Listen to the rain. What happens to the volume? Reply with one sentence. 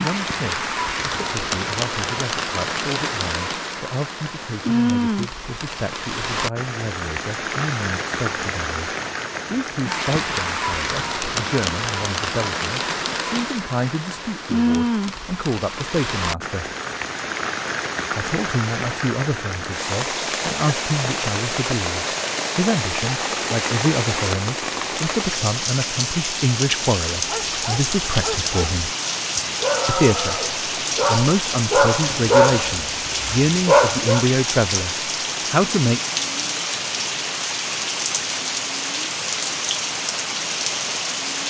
The volume of the rain stays about the same.